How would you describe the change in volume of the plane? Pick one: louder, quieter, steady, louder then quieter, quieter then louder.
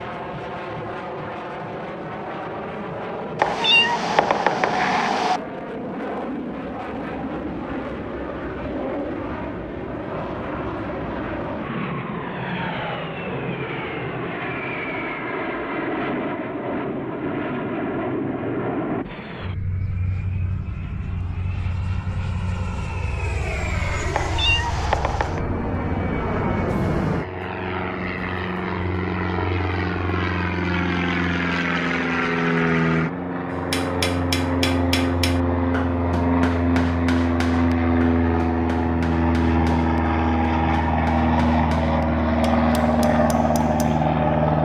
louder.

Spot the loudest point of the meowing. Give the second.
4 s.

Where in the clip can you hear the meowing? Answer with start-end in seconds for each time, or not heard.
3.4-5.4, 24.1-25.4.